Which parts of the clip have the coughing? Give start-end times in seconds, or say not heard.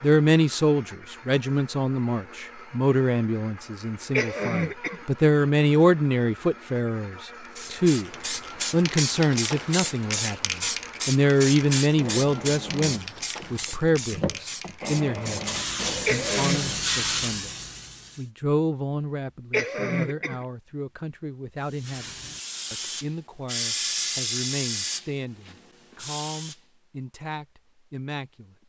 4.1-5.0, 16.1-16.6, 19.5-20.4.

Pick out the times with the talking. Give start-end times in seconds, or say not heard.
0.0-8.1, 8.7-15.4, 16.1-17.5, 18.1-22.1, 22.7-28.6.